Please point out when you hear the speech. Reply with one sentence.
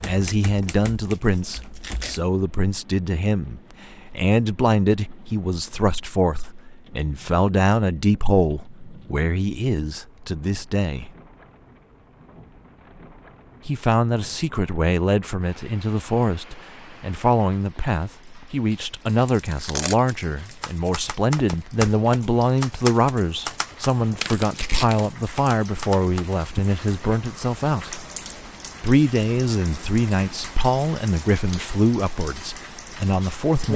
The speech can be heard from 0.1 to 11.1 s, from 13.7 to 28.1 s and from 28.8 to 33.7 s.